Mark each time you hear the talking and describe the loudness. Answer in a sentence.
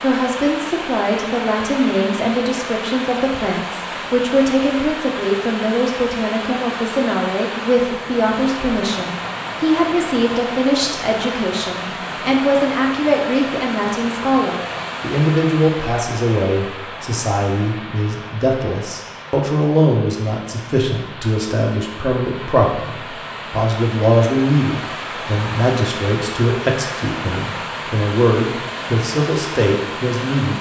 You can hear the talking from 0.0 to 30.5 s, at a steady volume.